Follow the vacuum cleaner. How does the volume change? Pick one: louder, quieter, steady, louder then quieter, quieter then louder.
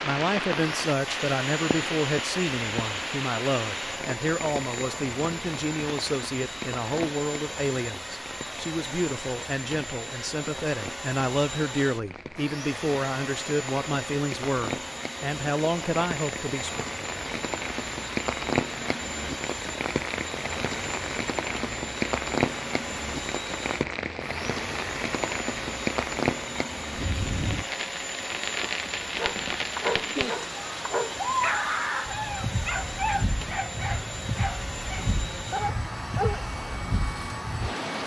steady.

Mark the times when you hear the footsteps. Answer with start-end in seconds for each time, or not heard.
not heard.